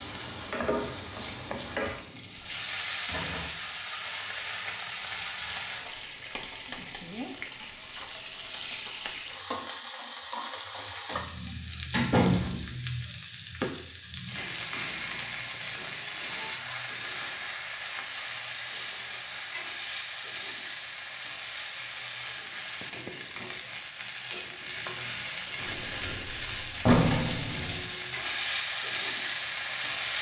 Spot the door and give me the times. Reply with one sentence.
You can hear the door from 11.4 to 12.8 s and from 25.6 to 27.9 s.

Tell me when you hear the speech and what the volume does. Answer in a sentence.
You can't hear the speech here.